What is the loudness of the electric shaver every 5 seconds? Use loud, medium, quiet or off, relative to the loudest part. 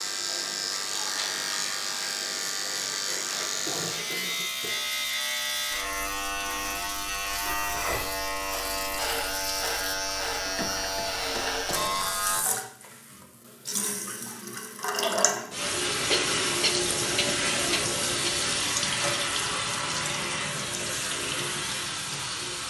loud, loud, loud, off, off.